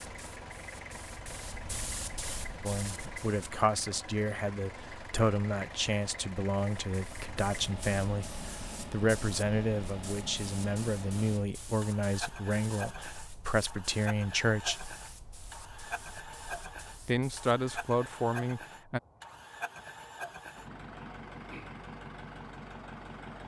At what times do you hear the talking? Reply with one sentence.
The talking can be heard from 2.6 to 14.9 s and from 17.1 to 19.0 s.